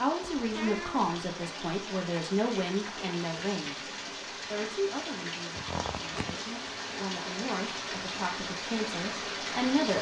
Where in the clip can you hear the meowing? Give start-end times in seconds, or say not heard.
0.2-1.1, 5.5-6.3.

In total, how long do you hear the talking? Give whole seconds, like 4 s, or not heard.
10 s.